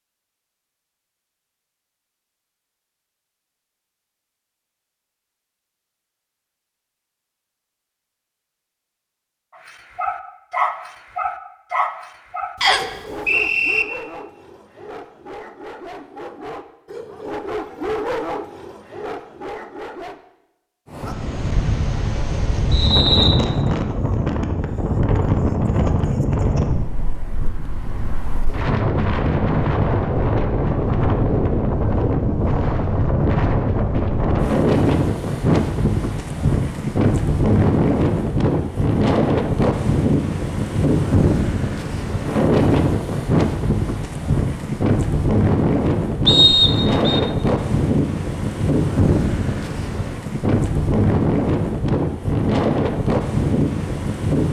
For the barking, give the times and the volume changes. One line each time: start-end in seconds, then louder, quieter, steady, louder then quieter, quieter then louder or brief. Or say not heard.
9.6-20.2 quieter then louder.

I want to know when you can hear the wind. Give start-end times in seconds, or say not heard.
20.9-54.4.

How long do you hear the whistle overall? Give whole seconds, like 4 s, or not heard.
3 s.